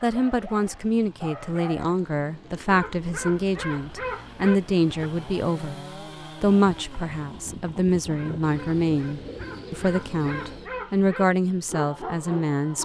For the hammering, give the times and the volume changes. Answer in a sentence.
You can't hear the hammering here.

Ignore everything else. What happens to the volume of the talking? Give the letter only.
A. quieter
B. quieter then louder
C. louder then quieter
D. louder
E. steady
E.